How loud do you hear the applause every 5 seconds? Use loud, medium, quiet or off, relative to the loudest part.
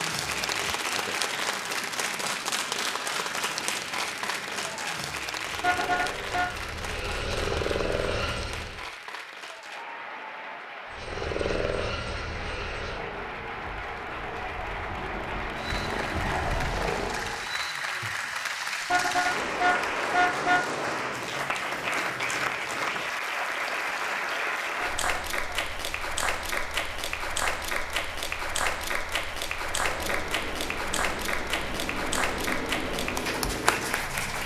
loud, medium, medium, loud, loud, loud, loud.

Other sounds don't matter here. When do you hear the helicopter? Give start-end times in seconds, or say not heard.
0.1-8.8, 10.9-17.5, 29.7-34.4.